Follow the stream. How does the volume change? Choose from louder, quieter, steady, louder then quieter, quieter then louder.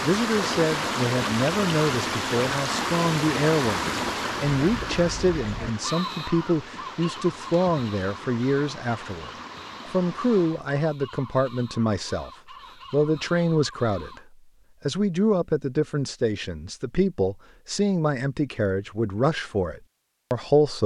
quieter.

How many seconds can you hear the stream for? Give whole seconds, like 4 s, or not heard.
11 s.